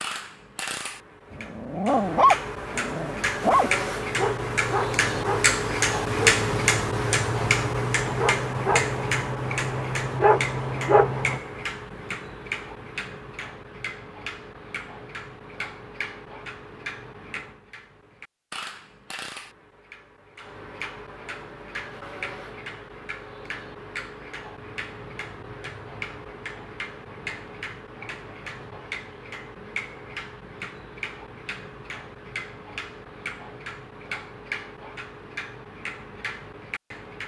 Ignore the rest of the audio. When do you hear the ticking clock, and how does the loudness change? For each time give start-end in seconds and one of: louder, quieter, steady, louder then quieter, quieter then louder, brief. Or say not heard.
0.0-37.2 quieter.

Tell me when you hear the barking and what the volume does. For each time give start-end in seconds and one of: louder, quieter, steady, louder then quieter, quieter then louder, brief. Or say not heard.
1.4-11.4 quieter then louder.